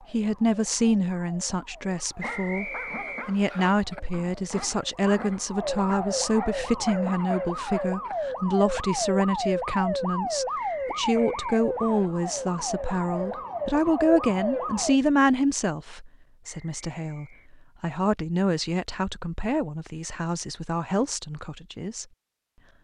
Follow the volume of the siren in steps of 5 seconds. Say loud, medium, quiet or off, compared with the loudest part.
quiet, loud, loud, off, off.